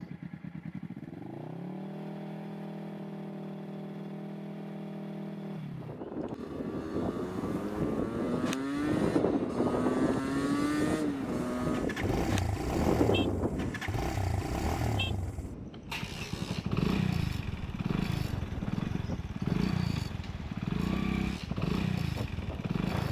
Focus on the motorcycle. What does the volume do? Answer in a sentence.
The loudness of the motorcycle goes up.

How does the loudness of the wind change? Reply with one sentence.
The loudness of the wind goes down.